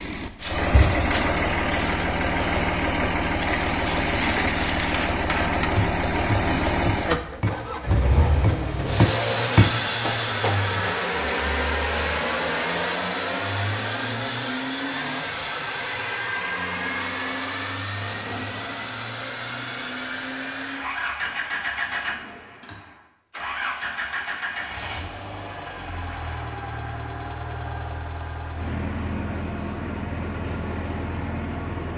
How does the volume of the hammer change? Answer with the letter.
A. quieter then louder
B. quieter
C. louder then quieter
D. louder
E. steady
D.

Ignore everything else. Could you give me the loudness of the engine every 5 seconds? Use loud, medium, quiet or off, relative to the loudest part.
loud, loud, loud, medium, medium, medium, medium.